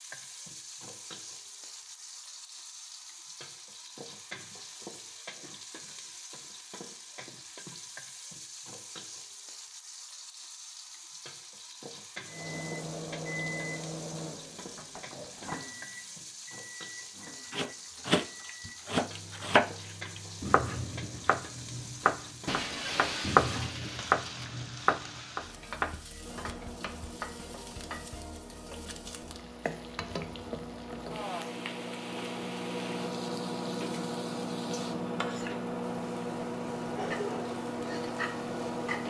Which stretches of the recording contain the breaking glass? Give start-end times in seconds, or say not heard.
22.4-24.4.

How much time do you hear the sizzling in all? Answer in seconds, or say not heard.
39 s.